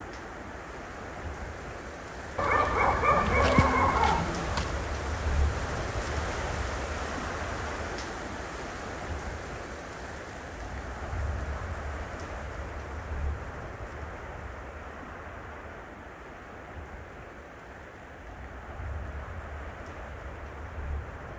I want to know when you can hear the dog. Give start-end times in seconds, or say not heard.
2.4-4.8.